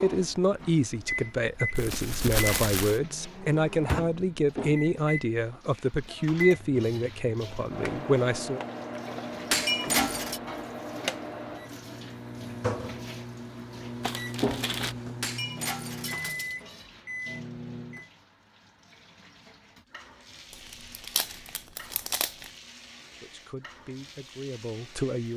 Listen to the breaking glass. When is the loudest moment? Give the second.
10 s.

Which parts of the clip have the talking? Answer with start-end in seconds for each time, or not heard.
0.0-8.6, 23.2-25.3.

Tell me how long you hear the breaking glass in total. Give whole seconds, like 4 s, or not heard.
2 s.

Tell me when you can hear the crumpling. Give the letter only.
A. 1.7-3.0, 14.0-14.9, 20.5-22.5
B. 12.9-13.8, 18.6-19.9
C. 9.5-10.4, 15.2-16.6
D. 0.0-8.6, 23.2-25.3
A.